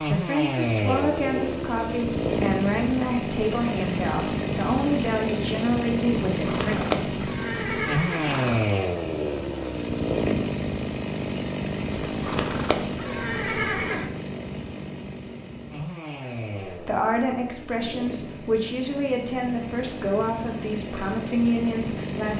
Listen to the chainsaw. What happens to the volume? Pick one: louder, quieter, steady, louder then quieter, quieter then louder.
quieter.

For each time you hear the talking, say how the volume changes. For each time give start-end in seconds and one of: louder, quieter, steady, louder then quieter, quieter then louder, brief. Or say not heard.
0.0-7.0 steady
16.6-22.3 steady.